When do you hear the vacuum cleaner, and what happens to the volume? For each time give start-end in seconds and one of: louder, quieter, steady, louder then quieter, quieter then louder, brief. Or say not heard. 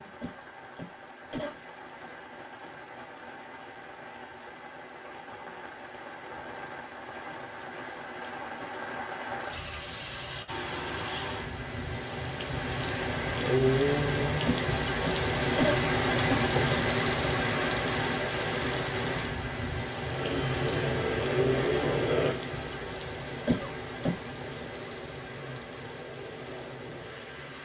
20.0-27.6 quieter.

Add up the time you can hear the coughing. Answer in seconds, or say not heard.
4 s.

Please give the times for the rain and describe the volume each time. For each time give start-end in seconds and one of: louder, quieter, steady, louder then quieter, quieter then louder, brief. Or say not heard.
0.0-27.6 louder then quieter.